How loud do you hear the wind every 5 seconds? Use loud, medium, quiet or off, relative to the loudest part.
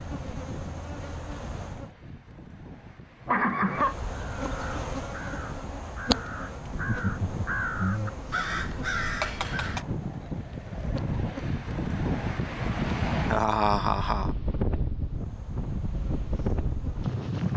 quiet, medium, loud, loud.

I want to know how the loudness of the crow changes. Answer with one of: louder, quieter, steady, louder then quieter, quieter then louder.
louder.